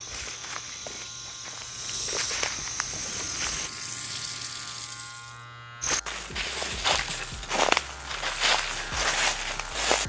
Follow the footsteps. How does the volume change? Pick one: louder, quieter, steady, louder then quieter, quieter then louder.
louder.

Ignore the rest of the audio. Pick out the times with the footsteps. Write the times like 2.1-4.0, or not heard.
0.0-3.7, 5.8-10.0.